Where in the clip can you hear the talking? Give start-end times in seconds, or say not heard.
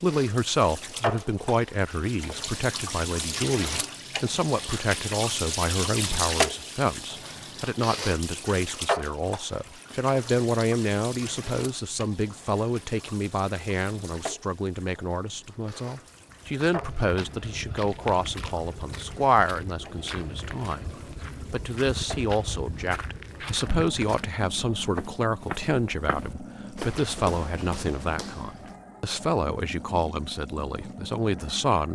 0.0-20.9, 21.5-31.9.